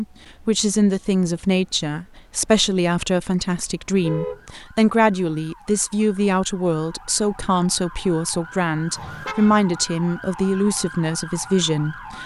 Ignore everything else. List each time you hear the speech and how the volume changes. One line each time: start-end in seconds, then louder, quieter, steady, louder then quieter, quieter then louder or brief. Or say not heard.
0.0-12.2 steady.